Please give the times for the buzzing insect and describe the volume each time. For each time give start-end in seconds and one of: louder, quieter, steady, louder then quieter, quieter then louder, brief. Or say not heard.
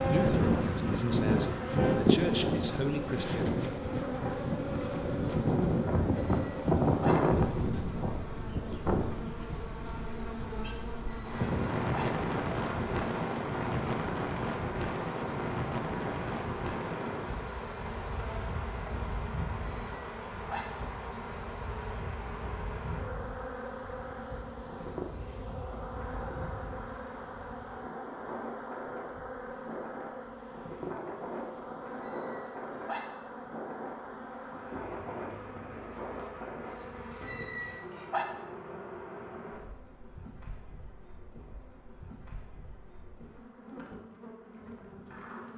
0.0-45.5 quieter.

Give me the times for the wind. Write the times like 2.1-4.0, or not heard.
0.0-37.0.